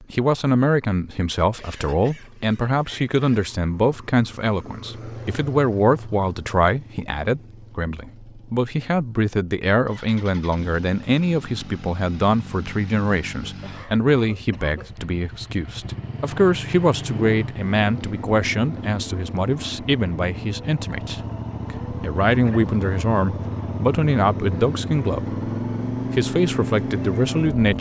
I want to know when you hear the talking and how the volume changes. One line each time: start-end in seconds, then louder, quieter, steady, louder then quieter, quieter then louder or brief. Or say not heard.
0.0-25.4 steady
26.1-27.7 brief.